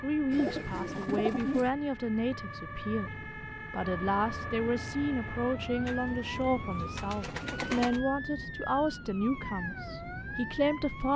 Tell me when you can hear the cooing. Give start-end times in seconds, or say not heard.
0.3-1.7, 5.8-8.0.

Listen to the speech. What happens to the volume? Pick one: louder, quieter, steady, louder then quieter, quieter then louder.
steady.